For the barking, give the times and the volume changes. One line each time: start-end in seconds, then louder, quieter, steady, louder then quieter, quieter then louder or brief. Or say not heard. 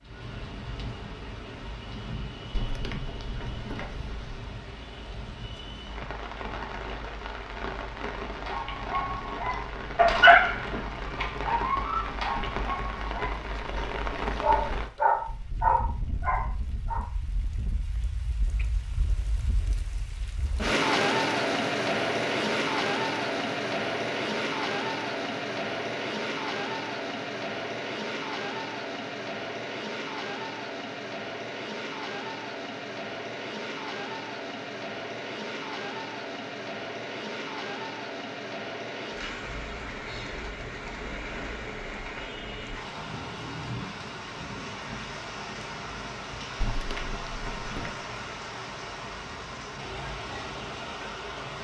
8.4-17.1 quieter then louder.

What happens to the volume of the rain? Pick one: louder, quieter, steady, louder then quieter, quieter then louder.
louder then quieter.